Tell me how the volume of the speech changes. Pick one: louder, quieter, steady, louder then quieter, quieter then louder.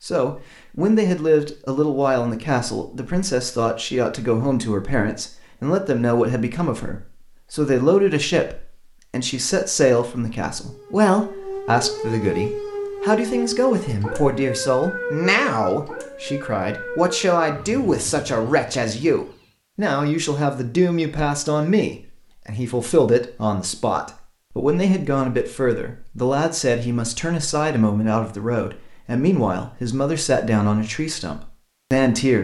steady.